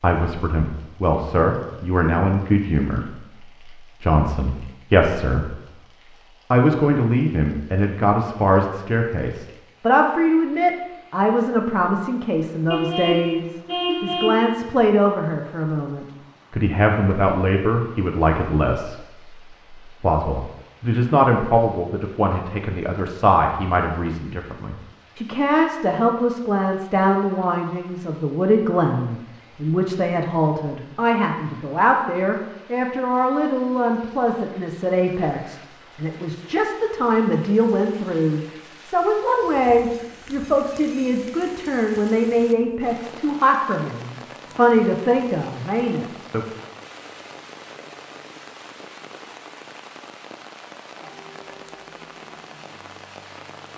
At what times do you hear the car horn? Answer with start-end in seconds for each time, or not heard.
12.7-14.4.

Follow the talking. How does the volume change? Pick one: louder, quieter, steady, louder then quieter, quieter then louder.
steady.